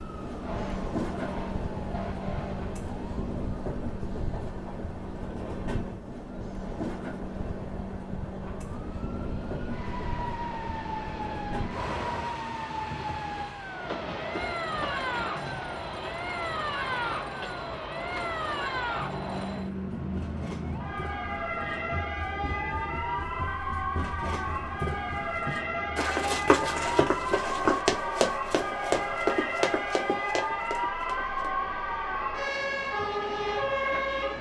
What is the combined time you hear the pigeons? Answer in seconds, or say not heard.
not heard.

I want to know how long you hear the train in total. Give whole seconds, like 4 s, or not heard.
34 s.